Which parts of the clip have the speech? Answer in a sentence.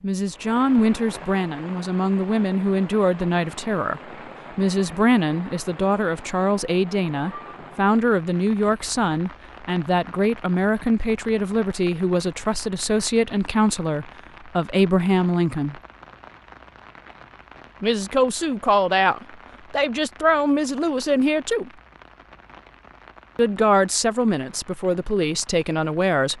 The speech can be heard from 0.0 to 15.8 s, from 17.8 to 21.7 s and from 23.4 to 26.3 s.